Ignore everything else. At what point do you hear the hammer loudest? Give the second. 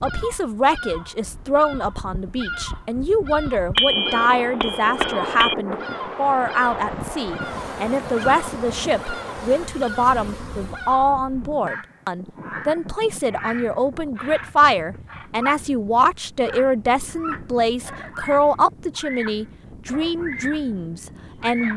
4 s.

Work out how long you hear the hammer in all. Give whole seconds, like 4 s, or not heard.
2 s.